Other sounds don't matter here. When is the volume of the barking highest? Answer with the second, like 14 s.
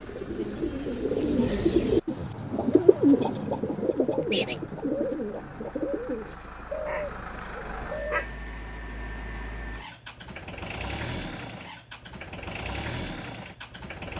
8 s.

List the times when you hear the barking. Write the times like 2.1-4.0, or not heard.
6.8-8.3.